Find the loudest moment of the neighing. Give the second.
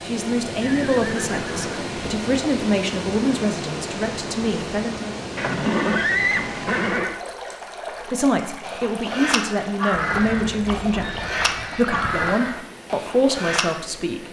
6 s.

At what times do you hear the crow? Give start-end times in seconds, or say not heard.
8.6-13.8.